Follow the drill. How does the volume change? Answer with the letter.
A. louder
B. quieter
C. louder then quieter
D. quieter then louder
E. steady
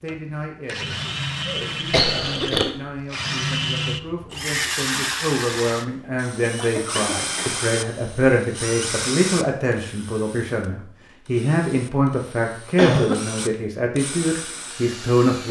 B.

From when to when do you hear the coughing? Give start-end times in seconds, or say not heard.
1.4-2.7, 6.4-7.6, 12.8-13.2.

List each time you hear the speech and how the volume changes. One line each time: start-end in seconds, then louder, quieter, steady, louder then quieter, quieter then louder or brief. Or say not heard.
0.0-15.4 louder.